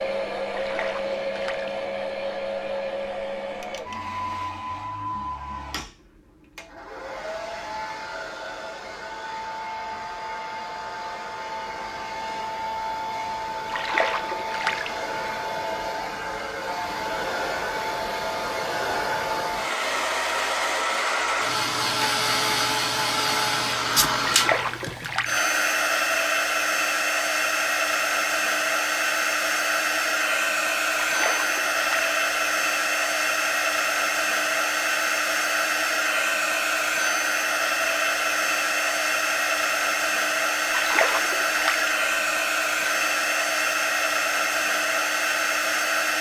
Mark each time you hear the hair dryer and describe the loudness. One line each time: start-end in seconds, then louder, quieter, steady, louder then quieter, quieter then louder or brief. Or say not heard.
0.0-46.1 louder.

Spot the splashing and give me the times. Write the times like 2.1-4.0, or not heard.
0.5-1.7, 13.7-14.9, 24.2-25.4, 31.0-32.1, 40.7-41.9.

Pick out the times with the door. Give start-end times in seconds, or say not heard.
not heard.